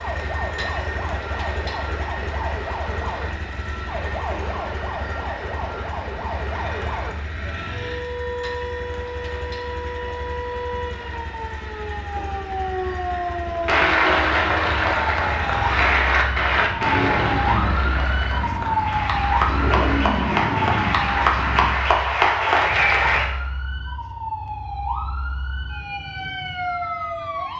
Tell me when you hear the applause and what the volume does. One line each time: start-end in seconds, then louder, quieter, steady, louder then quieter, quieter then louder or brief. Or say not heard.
13.7-23.2 quieter then louder.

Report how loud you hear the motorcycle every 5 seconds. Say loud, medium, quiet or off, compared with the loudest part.
medium, medium, medium, loud, loud, off.